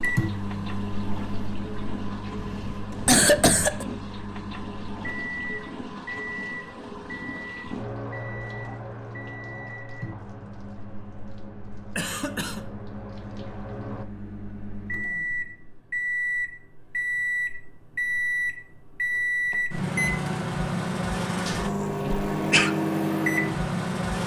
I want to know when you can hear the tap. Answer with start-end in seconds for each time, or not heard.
0.0-14.1.